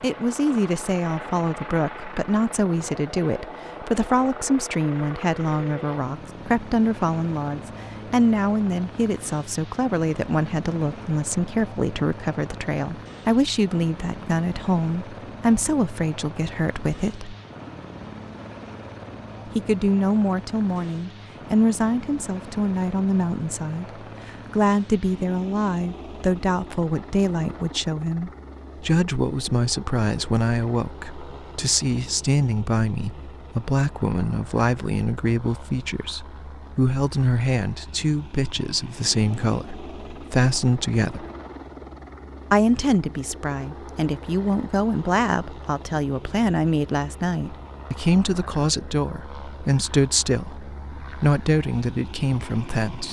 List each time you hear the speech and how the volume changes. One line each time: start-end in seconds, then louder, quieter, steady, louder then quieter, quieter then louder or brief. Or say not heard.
0.0-17.4 steady
19.4-41.2 steady
42.5-53.0 steady.